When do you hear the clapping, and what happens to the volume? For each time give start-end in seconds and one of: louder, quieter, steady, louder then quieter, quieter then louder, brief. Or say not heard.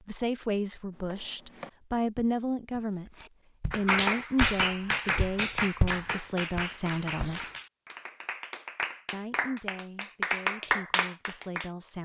3.1-11.7 quieter then louder.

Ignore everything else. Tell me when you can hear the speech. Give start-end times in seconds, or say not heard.
0.1-7.5, 9.1-12.0.